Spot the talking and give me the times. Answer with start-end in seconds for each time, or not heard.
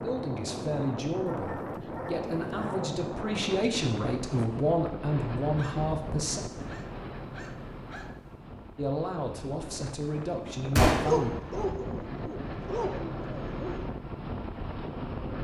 0.0-6.5, 8.8-11.3.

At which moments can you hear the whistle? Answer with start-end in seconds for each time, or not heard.
not heard.